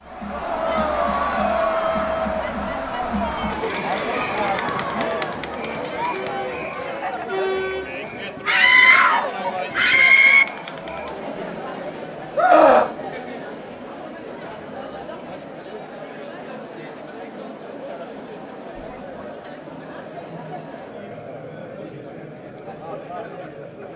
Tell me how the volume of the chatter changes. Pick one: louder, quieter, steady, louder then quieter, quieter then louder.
quieter.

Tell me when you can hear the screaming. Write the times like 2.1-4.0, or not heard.
8.4-10.4, 12.3-12.9.